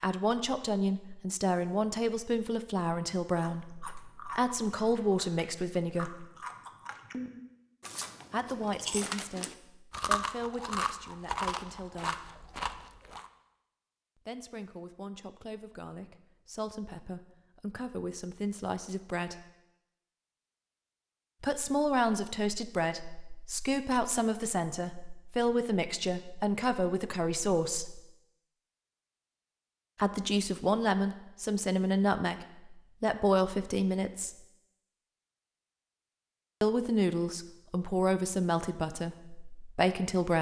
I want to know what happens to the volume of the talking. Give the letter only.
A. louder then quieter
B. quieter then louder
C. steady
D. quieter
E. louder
B.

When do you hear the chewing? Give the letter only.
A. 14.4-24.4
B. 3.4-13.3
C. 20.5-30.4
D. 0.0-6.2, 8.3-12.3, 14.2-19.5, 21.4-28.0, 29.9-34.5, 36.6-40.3
B.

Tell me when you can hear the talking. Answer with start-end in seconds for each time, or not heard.
0.0-6.2, 8.3-12.3, 14.2-19.5, 21.4-28.0, 29.9-34.5, 36.6-40.3.